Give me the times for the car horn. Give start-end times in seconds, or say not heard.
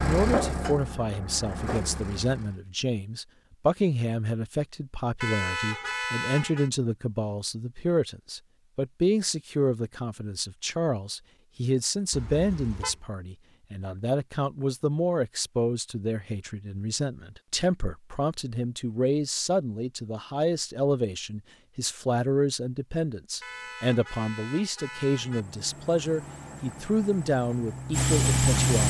5.2-6.7, 12.1-13.0, 23.4-25.4.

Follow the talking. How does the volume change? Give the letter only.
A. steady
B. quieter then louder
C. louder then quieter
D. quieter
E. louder
A.